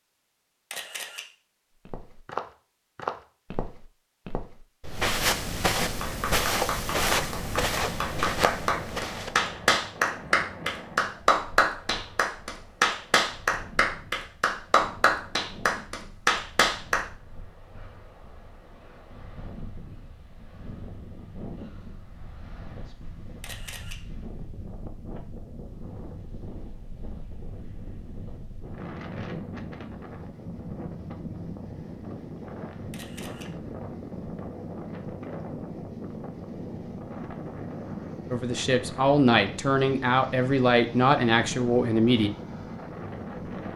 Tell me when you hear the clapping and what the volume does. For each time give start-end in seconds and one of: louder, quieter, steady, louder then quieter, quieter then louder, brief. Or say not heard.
6.0-17.1 louder.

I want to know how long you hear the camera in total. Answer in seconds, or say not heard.
2 s.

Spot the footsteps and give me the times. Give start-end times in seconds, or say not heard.
1.9-9.5.